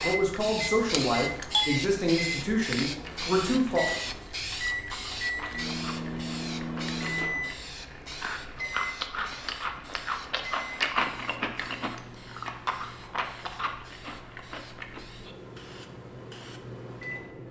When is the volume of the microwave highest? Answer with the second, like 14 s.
7 s.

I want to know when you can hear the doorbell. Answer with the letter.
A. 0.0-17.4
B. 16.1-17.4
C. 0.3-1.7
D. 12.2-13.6
C.